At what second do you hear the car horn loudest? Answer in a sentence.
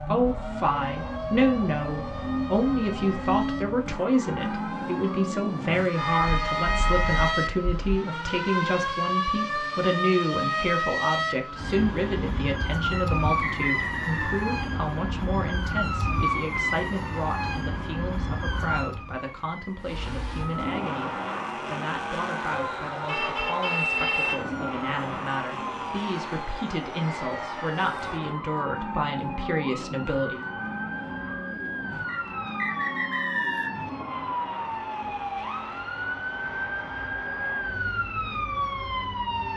The volume of the car horn peaks at 24 seconds.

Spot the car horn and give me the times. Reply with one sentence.
The car horn can be heard from 6.0 to 8.0 s and from 22.5 to 24.4 s.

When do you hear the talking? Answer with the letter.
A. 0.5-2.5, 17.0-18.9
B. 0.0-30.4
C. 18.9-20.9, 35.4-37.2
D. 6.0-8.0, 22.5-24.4
B.